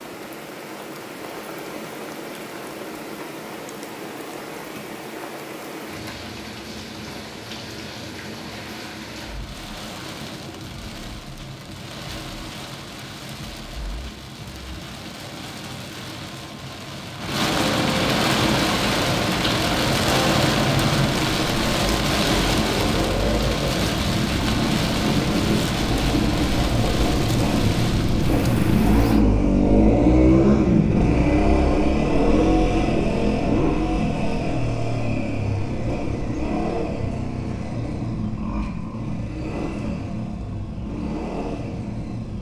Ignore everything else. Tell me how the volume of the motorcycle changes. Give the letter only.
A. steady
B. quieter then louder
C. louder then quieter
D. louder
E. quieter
C.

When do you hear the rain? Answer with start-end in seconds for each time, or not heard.
0.0-29.2.